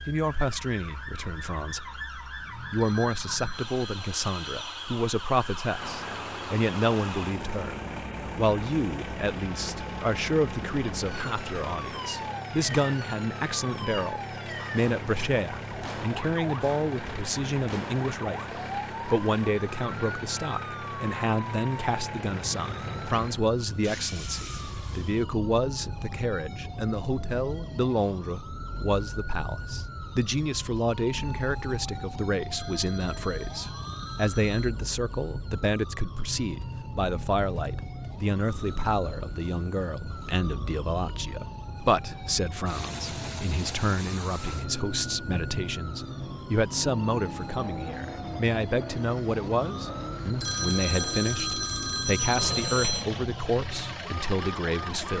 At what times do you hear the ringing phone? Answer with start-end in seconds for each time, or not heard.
2.8-4.6, 32.5-34.7, 50.4-53.0.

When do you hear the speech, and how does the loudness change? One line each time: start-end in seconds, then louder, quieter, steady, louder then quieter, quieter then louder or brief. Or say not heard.
0.0-55.1 steady.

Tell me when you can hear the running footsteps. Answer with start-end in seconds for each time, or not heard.
not heard.